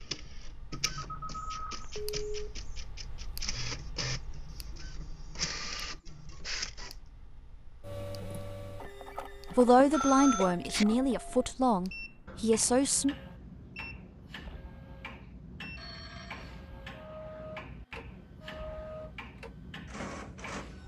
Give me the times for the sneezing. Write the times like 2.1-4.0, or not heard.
10.3-11.3.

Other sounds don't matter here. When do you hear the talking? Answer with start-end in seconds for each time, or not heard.
9.6-13.2.